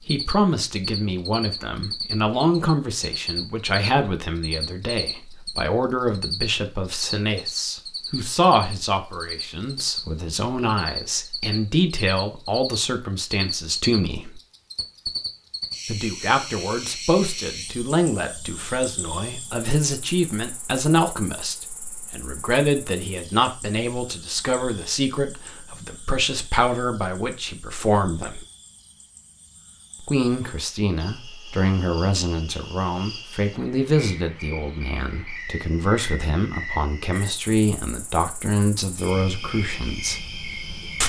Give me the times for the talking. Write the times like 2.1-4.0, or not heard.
0.1-14.4, 15.8-28.4, 30.0-40.2.